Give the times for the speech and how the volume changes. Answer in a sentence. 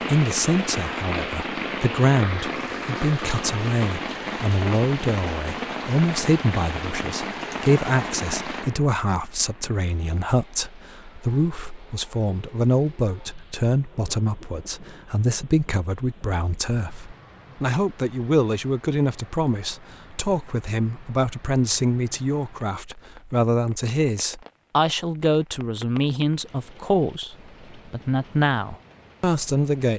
You can hear the speech from 0.1 to 29.9 s, at a steady volume.